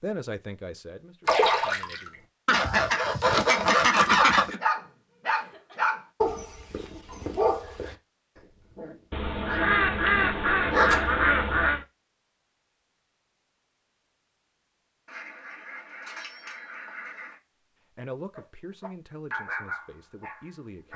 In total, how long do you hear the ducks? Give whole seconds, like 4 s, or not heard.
7 s.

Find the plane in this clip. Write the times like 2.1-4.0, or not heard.
not heard.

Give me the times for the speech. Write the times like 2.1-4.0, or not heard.
0.0-2.2, 17.9-20.9.